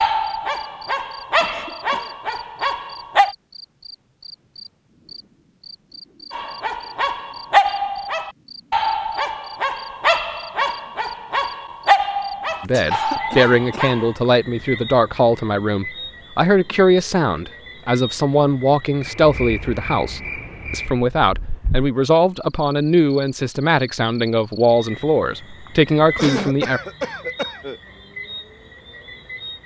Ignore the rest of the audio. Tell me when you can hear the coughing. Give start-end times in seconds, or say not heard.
1.4-2.1, 12.5-13.9, 26.1-27.8.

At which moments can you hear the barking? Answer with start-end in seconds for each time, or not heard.
0.0-3.4, 6.3-14.2.